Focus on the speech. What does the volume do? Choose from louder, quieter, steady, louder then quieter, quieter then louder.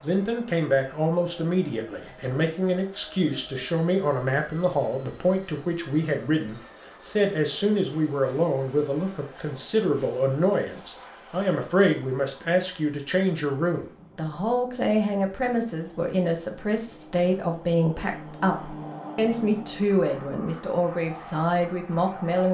steady.